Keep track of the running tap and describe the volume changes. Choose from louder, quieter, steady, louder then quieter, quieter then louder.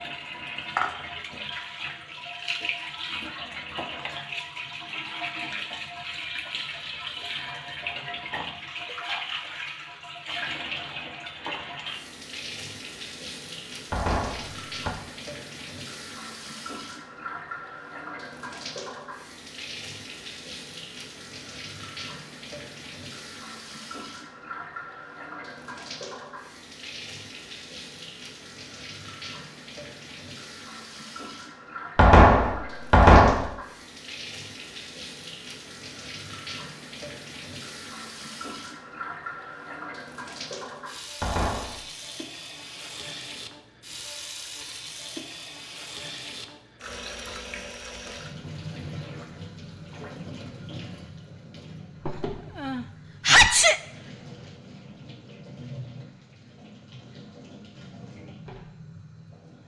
quieter.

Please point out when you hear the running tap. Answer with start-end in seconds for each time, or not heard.
0.0-59.6.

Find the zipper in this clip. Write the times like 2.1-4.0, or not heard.
not heard.